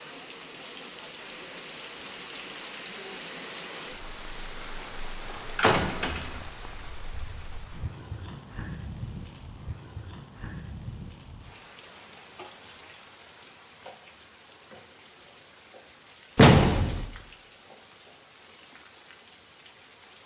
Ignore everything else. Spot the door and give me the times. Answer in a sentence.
You can hear the door from 5.2 to 6.3 s and from 16.4 to 17.1 s.